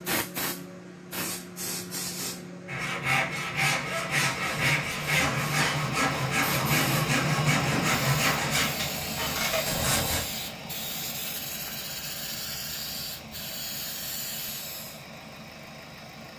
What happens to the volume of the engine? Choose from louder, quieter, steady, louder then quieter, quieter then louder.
quieter.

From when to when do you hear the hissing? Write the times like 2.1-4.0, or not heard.
0.0-15.1.